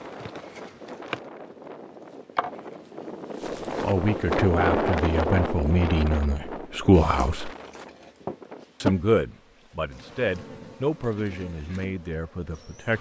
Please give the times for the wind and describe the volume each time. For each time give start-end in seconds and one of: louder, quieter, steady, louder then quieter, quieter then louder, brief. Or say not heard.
0.0-10.8 louder then quieter.